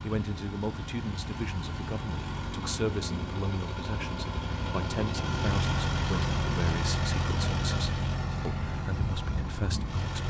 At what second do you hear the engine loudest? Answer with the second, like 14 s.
6 s.